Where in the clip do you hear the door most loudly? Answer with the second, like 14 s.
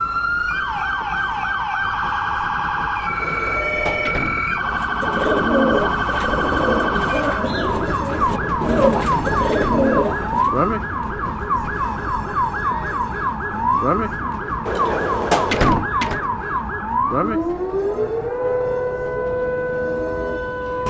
15 s.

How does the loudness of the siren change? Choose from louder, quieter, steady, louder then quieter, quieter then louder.
steady.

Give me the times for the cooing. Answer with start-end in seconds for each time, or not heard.
4.6-10.6.